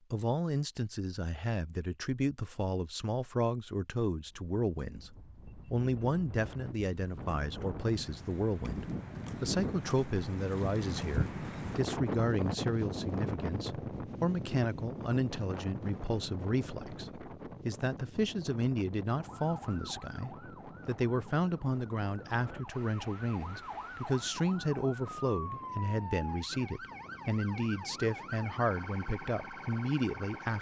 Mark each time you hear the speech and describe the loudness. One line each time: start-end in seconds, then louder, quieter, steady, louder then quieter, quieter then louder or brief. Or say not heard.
0.1-30.5 steady.